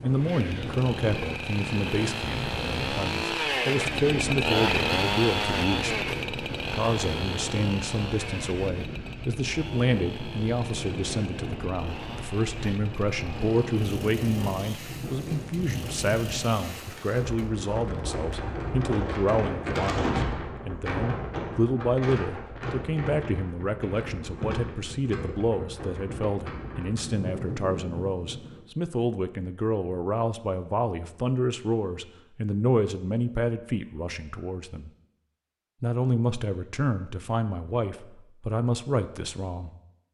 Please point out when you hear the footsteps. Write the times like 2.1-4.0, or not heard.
not heard.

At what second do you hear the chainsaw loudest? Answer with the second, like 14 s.
5 s.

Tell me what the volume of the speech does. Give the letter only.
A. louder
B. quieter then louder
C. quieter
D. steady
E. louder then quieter
D.